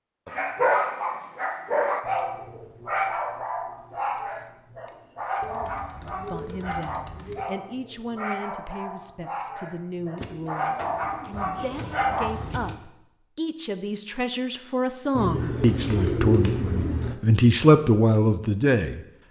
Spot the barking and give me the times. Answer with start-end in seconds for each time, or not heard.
0.3-12.3.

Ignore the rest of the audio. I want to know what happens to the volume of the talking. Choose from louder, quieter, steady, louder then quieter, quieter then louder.
louder.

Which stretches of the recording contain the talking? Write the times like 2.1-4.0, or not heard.
6.0-19.1.